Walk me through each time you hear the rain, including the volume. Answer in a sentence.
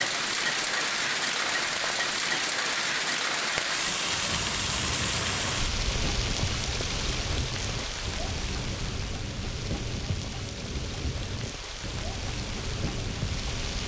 You can hear the rain from 0.0 to 13.8 s, getting quieter.